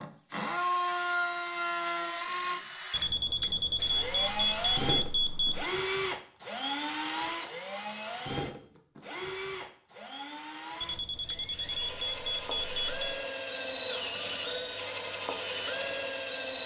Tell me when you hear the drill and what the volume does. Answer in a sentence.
You can hear the drill from 0.0 to 16.6 s, getting quieter then louder.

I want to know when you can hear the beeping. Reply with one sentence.
The beeping can be heard from 2.9 to 5.7 s and from 10.8 to 13.2 s.